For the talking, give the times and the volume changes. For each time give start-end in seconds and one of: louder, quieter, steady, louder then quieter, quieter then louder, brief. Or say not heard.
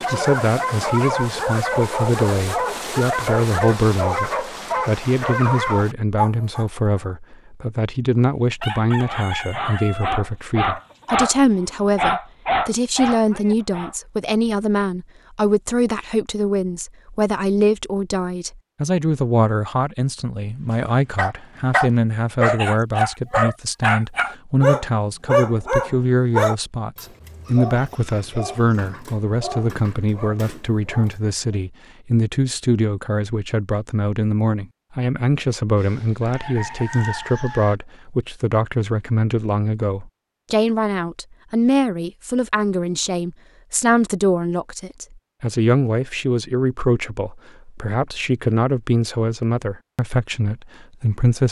0.1-51.4 steady.